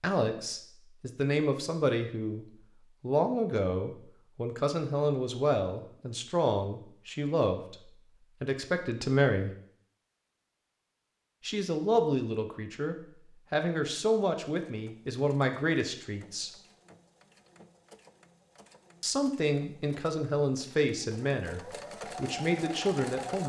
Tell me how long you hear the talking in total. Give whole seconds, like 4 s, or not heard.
19 s.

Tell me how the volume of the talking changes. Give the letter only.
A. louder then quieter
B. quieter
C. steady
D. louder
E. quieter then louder
C.